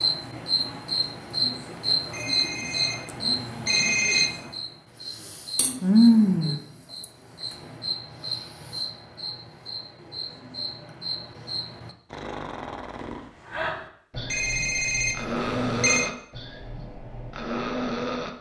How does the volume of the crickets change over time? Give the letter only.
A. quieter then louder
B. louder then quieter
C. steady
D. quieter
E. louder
B.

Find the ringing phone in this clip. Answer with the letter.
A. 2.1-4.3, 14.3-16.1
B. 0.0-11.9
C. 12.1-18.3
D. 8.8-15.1
A.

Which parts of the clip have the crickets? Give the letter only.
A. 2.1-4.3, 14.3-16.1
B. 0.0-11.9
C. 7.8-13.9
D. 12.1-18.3
B.